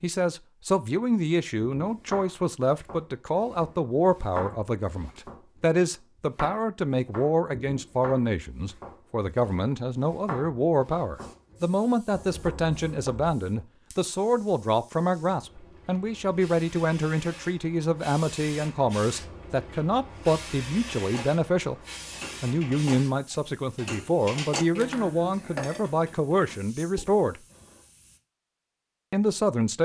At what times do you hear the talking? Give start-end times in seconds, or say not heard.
0.0-21.8, 22.4-27.4, 29.1-29.8.